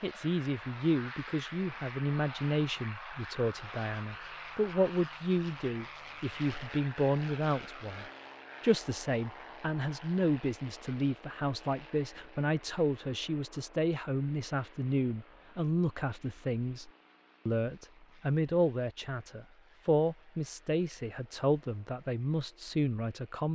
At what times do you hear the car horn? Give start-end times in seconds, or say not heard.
not heard.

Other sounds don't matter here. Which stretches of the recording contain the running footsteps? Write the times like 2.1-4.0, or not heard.
not heard.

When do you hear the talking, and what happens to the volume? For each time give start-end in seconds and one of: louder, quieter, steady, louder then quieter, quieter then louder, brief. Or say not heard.
0.0-23.5 steady.